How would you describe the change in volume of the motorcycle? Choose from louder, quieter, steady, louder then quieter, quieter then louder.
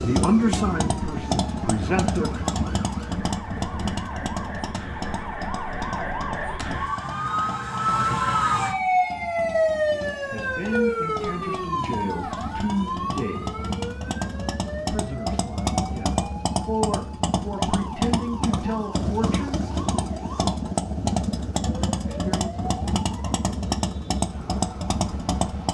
quieter then louder.